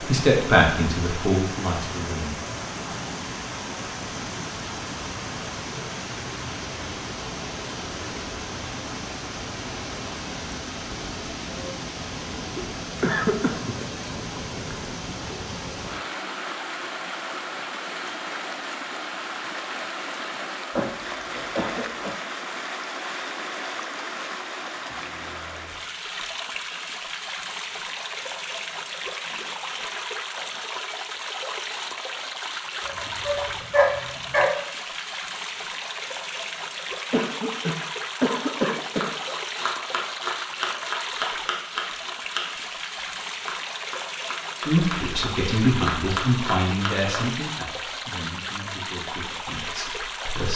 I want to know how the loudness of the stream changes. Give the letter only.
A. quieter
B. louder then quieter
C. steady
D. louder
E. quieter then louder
C.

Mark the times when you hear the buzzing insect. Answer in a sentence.
You can't hear the buzzing insect here.